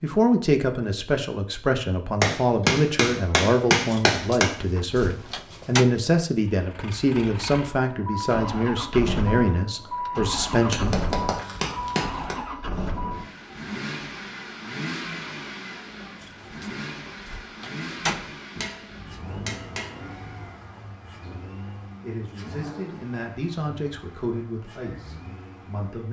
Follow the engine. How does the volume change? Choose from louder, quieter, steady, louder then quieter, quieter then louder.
quieter.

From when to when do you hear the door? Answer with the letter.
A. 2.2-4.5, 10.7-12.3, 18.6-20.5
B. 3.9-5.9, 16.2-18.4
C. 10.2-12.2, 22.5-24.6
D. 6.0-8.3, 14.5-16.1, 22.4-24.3
B.